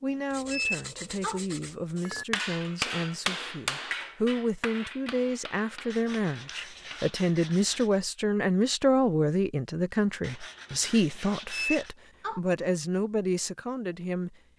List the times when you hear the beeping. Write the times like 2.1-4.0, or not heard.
0.5-1.4, 11.5-12.4.